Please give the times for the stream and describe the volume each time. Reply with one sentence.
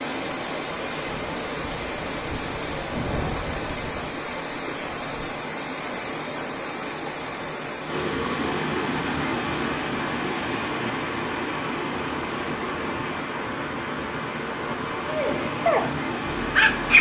The stream can be heard from 0.0 to 16.9 s, at a steady volume.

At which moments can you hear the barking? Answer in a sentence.
You can hear the barking from 15.1 to 16.9 s.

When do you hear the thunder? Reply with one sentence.
You can hear the thunder from 2.9 to 4.1 s.